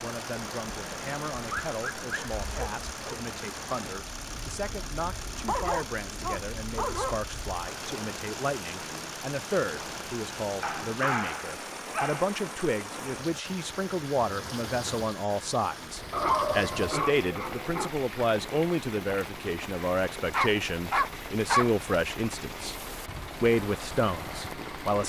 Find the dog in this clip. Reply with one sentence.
The dog can be heard from 1.4 to 3.2 s, from 5.3 to 7.2 s, from 10.6 to 12.3 s, from 16.1 to 17.9 s and from 20.3 to 21.7 s.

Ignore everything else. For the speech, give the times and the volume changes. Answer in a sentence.
You can hear the speech from 0.0 to 22.8 s, getting louder; and briefly from 23.4 to 25.0 s.